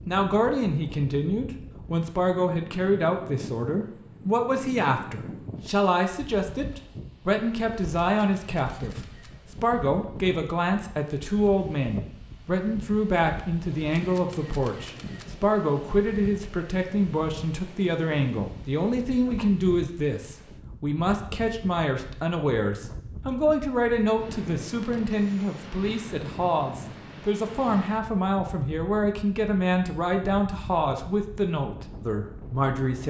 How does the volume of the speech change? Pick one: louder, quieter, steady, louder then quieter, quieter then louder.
steady.